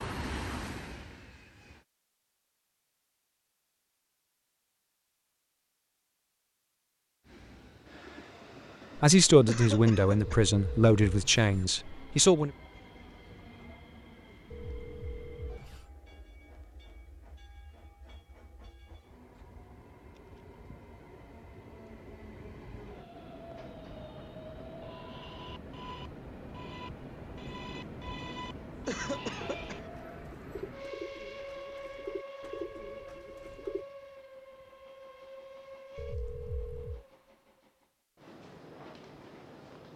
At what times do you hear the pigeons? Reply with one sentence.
The pigeons can be heard from 29.3 to 33.9 s.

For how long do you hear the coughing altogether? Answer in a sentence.
The coughing can be heard for 2 seconds in total.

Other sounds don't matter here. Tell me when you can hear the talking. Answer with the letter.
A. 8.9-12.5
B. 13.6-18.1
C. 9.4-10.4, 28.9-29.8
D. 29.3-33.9
A.